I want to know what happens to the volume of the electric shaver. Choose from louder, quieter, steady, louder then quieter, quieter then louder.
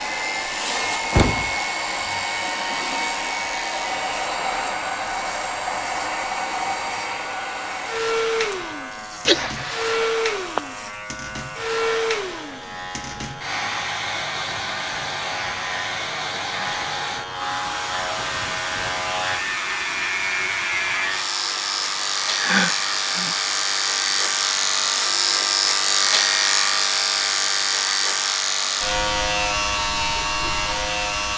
louder.